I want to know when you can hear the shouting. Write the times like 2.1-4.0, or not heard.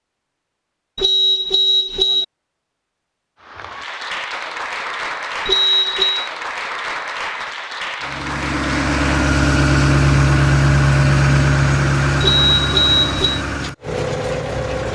not heard.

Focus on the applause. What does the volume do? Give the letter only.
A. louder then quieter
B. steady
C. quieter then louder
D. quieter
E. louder
B.